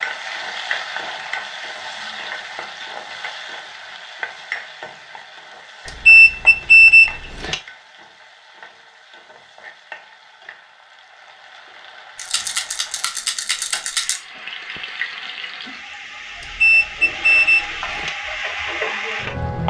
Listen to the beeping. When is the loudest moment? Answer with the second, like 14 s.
7 s.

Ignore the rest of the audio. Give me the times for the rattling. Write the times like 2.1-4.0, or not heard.
12.2-14.2.